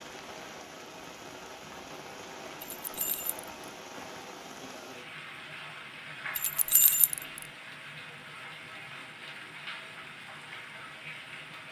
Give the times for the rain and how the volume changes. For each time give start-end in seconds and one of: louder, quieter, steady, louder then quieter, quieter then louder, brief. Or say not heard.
0.0-11.6 steady.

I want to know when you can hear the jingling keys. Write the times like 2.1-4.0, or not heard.
2.6-3.4, 6.3-7.4.